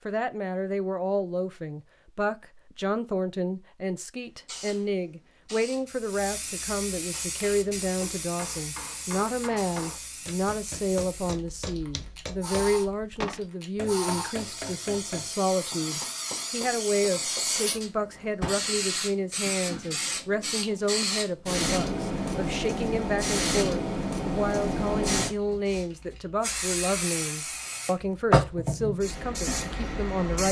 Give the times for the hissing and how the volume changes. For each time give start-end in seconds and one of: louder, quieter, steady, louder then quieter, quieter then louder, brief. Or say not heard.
4.2-30.4 louder.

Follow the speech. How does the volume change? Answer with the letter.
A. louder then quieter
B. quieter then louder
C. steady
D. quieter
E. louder
C.